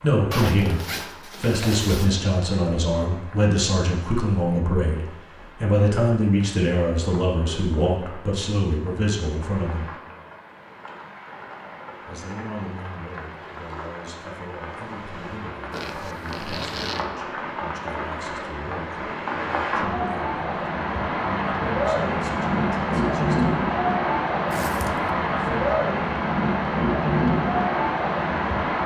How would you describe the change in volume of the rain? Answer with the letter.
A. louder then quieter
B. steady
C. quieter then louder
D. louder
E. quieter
D.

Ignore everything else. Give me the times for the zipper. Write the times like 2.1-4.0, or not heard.
0.3-2.1, 15.7-17.1, 24.5-25.1.